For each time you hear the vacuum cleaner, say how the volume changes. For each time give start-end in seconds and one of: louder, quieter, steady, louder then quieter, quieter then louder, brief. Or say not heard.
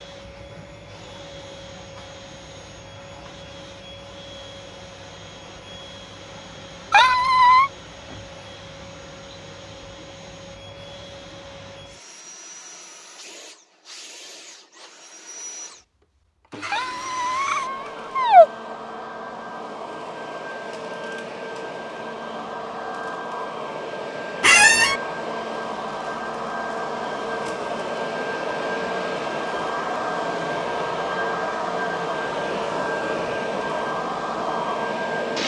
0.0-35.4 louder.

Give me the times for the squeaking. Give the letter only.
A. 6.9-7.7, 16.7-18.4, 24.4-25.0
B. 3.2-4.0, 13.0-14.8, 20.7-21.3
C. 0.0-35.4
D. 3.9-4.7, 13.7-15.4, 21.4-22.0
A.